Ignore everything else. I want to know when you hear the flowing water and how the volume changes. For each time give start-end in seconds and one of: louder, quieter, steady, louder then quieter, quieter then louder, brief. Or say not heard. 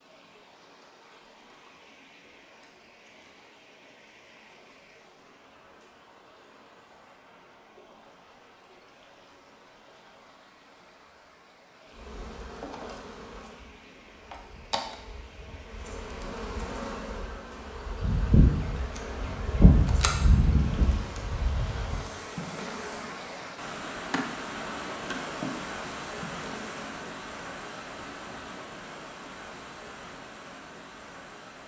0.0-31.6 louder.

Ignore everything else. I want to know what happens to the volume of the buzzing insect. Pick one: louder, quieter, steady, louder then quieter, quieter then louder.
louder then quieter.